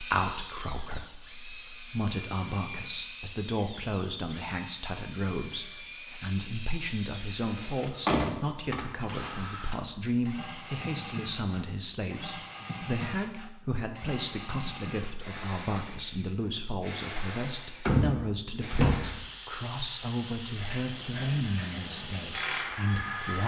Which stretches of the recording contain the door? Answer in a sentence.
You can hear the door from 7.5 to 9.3 s and from 17.9 to 19.2 s.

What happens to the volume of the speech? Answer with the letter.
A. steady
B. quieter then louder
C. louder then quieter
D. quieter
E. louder
A.